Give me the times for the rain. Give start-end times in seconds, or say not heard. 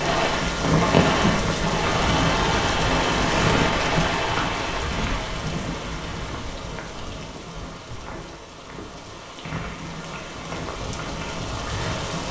0.0-12.2.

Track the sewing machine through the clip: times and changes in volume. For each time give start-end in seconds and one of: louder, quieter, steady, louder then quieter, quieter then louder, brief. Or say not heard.
0.0-6.3 quieter.